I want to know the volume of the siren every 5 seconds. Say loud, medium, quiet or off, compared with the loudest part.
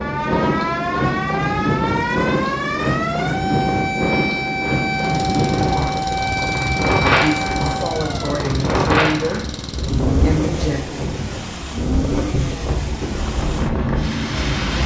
loud, loud, off.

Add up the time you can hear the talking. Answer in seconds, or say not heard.
4 s.